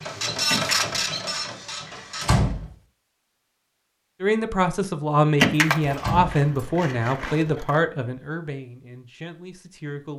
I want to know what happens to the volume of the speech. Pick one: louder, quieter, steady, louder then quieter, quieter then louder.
quieter.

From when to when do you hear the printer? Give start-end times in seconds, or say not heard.
0.0-2.4.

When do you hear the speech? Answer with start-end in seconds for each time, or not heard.
4.2-10.1.